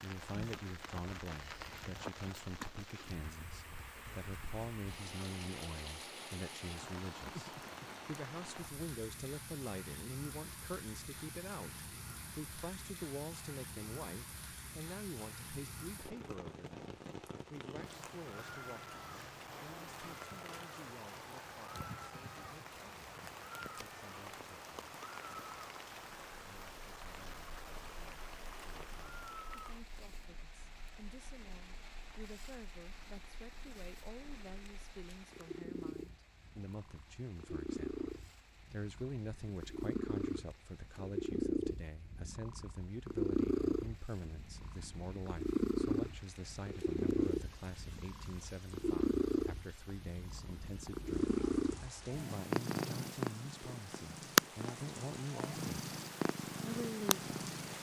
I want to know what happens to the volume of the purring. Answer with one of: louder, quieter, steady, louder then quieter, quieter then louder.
louder.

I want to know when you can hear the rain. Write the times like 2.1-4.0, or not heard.
0.0-57.7.